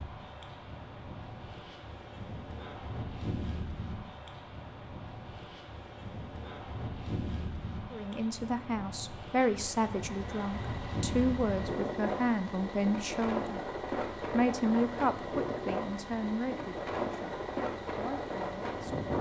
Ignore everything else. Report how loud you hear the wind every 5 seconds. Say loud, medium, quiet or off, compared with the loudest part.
medium, medium, loud, loud.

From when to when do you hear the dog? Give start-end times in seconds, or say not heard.
not heard.